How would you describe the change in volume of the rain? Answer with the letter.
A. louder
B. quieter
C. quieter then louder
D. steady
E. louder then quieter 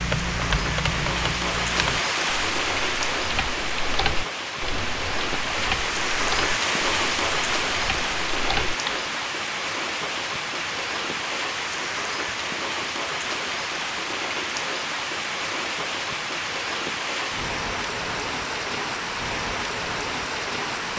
D.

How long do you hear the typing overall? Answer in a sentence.
You can hear the typing for 9 seconds altogether.